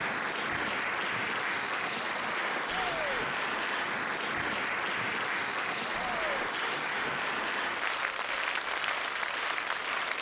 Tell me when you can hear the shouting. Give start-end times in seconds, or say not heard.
2.6-3.1, 5.9-6.5.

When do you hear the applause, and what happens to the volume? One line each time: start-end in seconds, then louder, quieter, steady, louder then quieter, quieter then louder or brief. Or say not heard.
0.0-10.1 steady.